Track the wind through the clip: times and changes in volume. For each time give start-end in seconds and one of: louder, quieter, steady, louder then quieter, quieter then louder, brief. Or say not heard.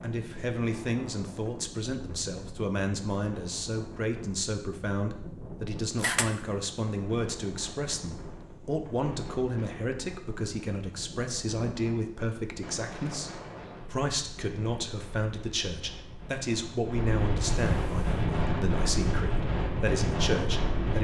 0.0-20.9 louder.